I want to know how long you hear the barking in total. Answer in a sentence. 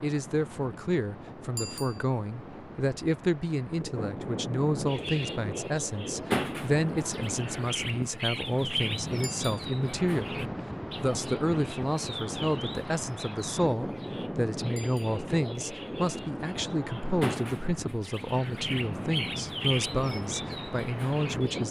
The barking can't be heard in this clip.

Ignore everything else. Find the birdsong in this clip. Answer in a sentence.
You can hear the birdsong from 4.8 to 21.6 s.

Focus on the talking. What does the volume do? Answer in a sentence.
The volume of the talking stays about the same.